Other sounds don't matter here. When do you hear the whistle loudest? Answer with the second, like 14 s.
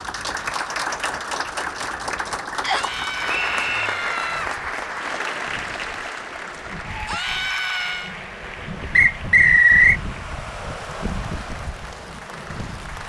10 s.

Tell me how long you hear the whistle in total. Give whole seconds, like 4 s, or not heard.
2 s.